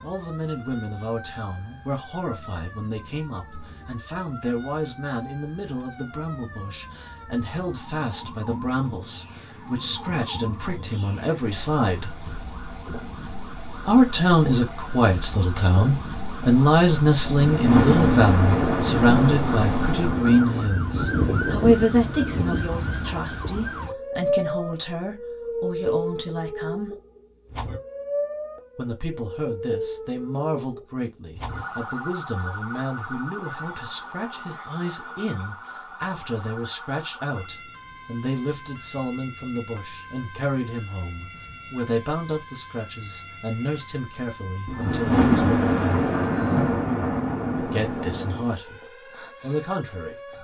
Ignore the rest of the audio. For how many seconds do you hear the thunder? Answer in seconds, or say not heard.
7 s.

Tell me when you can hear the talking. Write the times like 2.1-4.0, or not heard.
0.0-12.2, 13.8-26.9, 28.8-46.1, 47.5-50.1.